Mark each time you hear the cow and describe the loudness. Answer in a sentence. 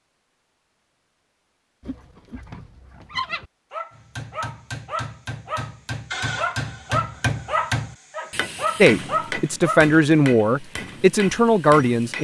The cow can't be heard in this clip.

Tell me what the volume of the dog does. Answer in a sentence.
The loudness of the dog goes up.